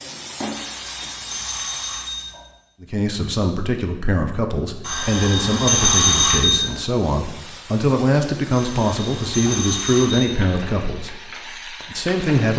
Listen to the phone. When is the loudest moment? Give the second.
6 s.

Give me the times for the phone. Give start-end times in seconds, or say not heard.
0.6-2.5, 4.8-6.8, 8.5-10.6.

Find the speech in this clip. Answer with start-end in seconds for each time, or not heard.
2.8-12.5.